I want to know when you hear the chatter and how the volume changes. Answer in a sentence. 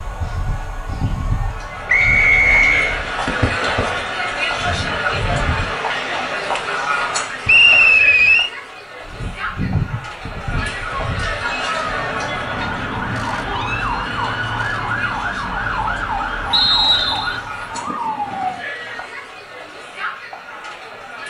The chatter can be heard from 0.0 to 21.2 s, getting quieter.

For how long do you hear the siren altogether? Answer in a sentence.
The siren can be heard for 15 seconds in total.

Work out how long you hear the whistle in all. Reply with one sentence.
You can hear the whistle for 3 seconds altogether.